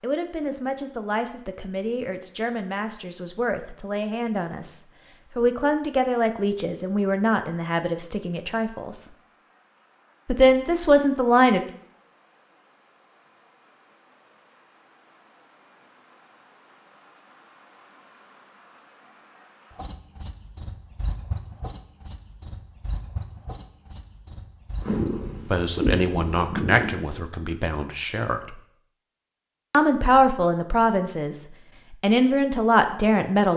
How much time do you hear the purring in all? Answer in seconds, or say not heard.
2 s.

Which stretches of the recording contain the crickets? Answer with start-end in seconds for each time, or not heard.
0.0-25.4.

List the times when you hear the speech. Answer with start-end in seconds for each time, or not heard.
0.0-9.1, 10.2-11.6, 25.5-28.6, 29.7-33.5.